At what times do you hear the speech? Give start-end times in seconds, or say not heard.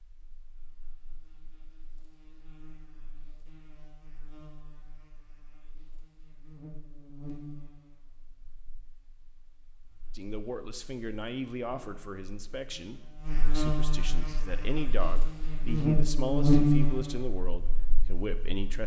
10.2-18.8.